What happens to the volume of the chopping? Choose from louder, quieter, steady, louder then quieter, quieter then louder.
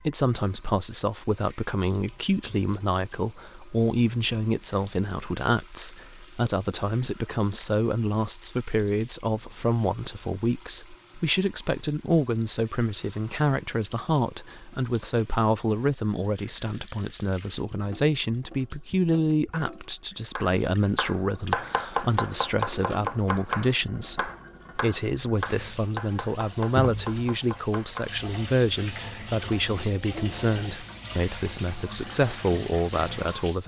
quieter.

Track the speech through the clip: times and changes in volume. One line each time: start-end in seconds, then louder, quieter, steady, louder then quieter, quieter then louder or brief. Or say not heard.
0.1-33.6 steady.